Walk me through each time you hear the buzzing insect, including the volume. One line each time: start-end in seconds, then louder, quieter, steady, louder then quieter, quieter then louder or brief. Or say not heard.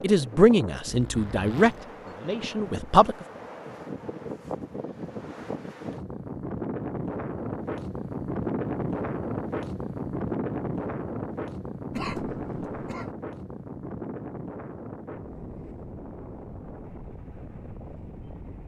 not heard.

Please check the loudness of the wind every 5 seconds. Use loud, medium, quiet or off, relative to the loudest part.
medium, loud, loud, medium.